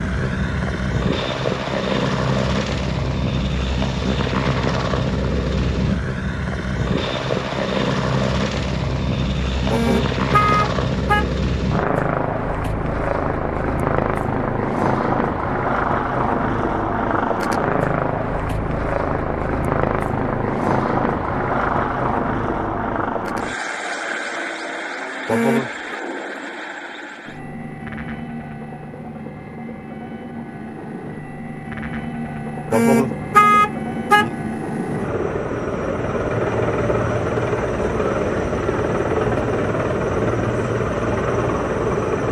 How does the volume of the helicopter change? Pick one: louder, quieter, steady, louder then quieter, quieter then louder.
quieter then louder.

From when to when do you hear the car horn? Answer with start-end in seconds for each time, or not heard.
9.7-11.3, 25.2-25.9, 32.7-34.5.